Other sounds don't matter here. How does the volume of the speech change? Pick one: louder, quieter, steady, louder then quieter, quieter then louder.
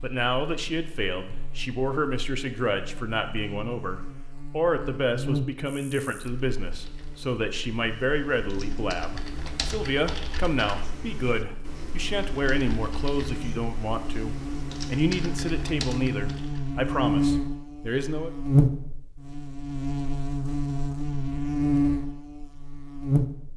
steady.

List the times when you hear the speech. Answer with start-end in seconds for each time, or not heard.
0.0-18.3.